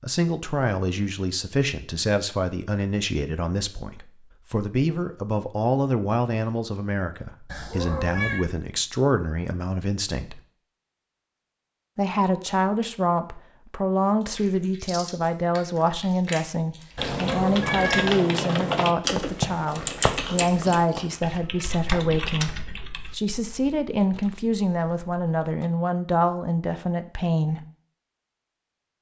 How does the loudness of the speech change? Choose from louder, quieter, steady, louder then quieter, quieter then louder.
steady.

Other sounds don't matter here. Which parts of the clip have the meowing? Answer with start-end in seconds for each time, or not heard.
7.5-8.4, 16.9-18.2.